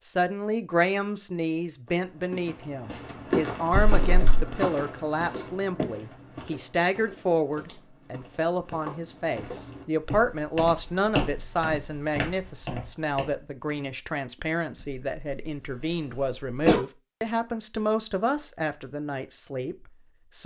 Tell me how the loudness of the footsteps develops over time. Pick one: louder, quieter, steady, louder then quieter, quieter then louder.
quieter then louder.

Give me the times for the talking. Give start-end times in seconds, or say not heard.
0.0-20.4.